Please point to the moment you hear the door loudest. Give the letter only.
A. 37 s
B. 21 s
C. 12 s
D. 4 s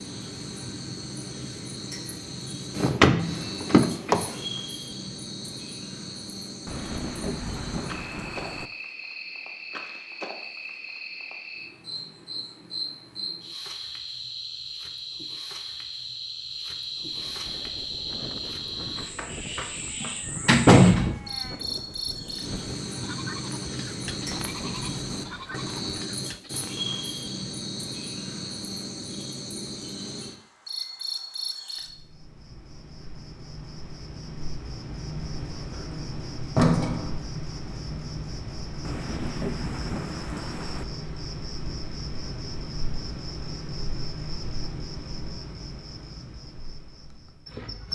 B.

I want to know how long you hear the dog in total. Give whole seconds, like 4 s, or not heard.
not heard.